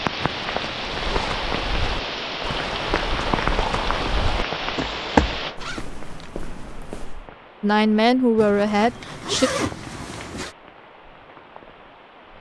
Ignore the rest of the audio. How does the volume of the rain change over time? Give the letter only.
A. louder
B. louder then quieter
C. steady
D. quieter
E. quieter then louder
D.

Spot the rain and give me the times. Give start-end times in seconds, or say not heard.
0.0-12.3.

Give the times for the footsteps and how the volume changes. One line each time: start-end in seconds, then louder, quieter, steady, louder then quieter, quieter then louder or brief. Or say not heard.
1.0-7.2 louder then quieter.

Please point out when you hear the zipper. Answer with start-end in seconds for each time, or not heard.
0.2-1.4, 5.4-6.3, 8.3-10.6.